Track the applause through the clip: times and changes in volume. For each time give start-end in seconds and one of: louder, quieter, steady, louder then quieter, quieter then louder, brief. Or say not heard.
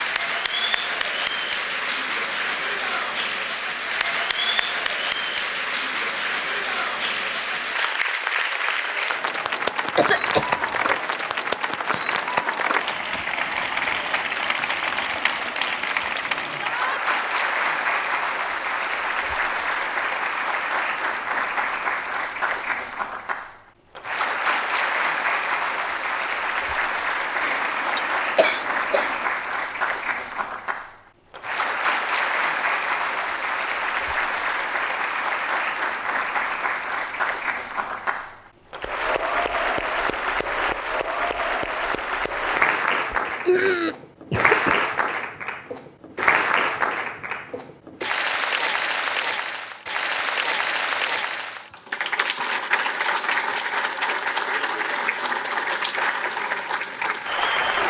0.0-57.8 steady.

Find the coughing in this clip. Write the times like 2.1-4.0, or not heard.
9.9-10.9, 27.4-29.2, 43.1-44.9.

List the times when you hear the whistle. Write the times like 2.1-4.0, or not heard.
not heard.